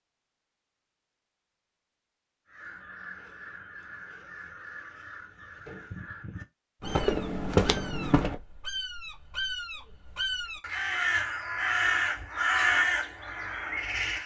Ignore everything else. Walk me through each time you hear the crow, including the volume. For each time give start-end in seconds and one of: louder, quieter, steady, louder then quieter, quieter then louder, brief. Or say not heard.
2.5-14.2 louder.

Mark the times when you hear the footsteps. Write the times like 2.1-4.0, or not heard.
6.8-8.3.